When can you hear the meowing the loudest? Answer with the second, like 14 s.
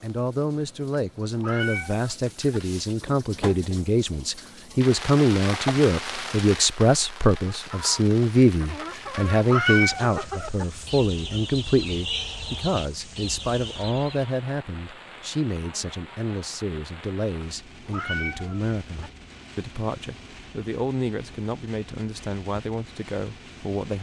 10 s.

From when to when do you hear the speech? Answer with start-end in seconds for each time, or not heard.
0.0-23.9.